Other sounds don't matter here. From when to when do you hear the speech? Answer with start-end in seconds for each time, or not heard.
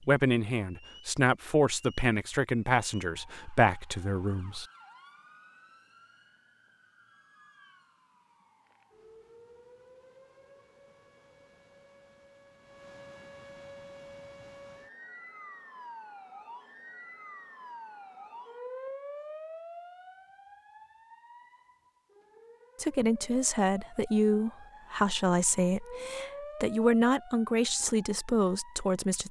0.1-4.7, 22.8-29.2.